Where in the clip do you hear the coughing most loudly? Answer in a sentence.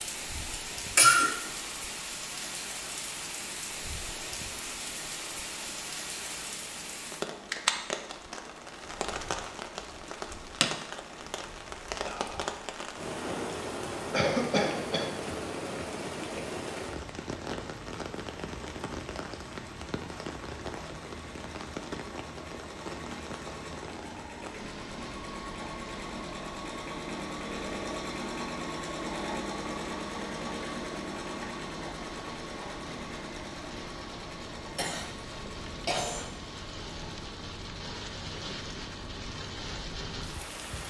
The volume of the coughing peaks at 1 second.